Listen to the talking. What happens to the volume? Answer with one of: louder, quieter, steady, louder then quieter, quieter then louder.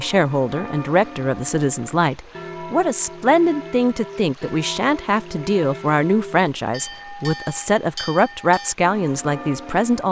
steady.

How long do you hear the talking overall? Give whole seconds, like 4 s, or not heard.
10 s.